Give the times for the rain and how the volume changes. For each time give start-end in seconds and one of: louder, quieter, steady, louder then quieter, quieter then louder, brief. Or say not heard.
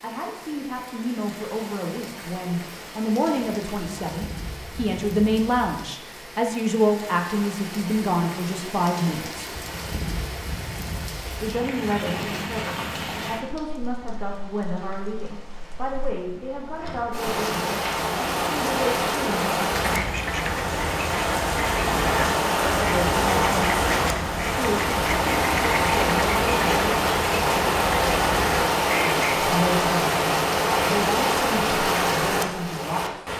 0.0-33.3 louder.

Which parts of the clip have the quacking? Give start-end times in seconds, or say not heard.
19.7-29.1.